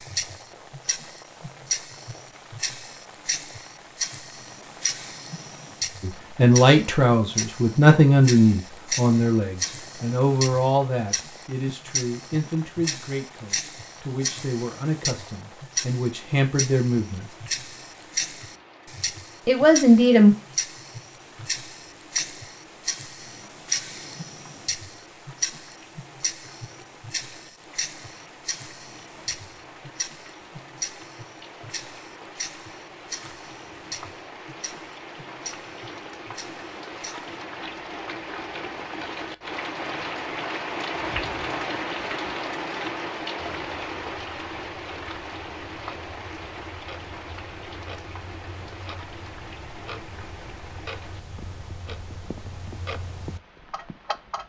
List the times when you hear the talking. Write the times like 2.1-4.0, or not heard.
6.0-17.2, 19.4-20.4.